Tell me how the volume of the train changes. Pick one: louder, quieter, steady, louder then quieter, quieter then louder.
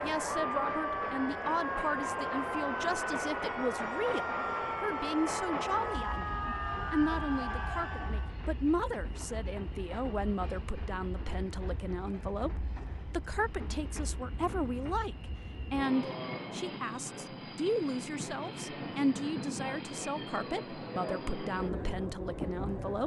quieter then louder.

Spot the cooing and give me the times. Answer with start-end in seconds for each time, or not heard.
not heard.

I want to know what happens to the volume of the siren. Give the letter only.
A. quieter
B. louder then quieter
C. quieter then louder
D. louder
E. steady
E.